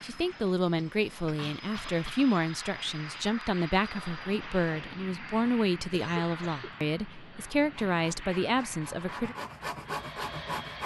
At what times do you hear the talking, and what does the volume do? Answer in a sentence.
You can hear the talking from 0.0 to 9.3 s, at a steady volume.